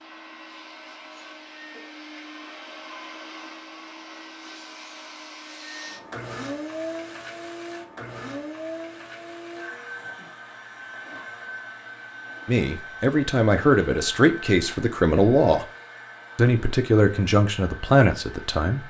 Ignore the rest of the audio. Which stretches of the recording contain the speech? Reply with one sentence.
The speech can be heard from 12.4 to 15.7 s and from 16.4 to 18.8 s.